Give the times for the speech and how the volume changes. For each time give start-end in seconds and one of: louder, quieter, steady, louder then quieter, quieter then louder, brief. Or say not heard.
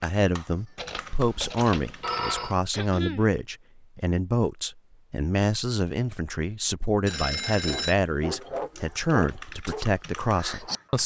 0.0-11.0 steady.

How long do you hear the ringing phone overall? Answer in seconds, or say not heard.
3 s.